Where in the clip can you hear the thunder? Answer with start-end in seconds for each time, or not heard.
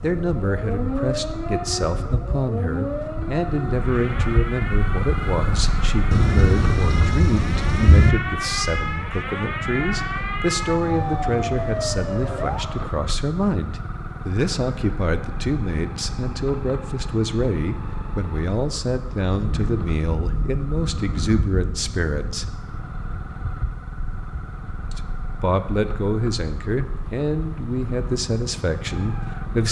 6.1-8.1, 19.3-22.4.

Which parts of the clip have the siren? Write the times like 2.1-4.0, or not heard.
0.0-12.9.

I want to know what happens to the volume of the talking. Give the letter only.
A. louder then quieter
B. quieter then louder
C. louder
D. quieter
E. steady
E.